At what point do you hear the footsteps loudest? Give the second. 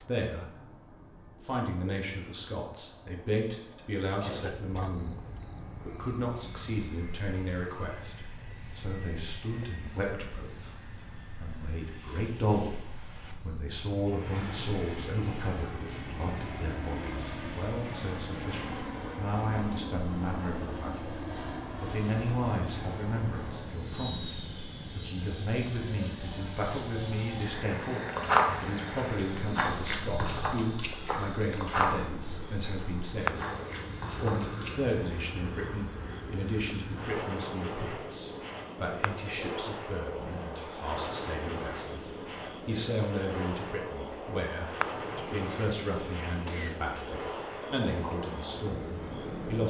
28 s.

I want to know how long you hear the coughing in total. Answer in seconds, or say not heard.
3 s.